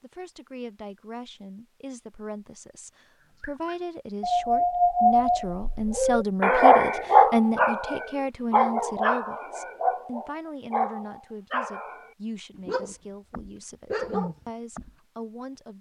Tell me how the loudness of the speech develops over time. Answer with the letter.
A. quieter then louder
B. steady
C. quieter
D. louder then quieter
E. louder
D.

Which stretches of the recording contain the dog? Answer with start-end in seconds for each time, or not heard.
3.4-14.9.